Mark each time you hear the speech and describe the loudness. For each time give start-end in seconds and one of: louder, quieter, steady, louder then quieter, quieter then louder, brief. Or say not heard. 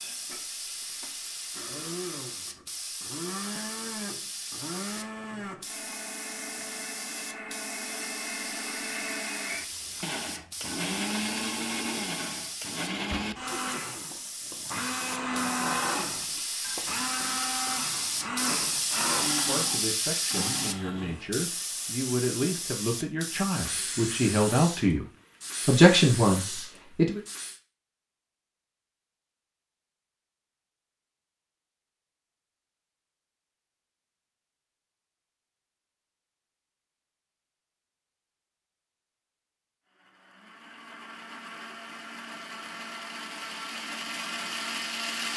19.3-25.1 louder
25.6-27.2 brief.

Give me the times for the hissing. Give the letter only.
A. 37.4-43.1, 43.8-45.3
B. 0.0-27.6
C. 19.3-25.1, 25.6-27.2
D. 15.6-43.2
B.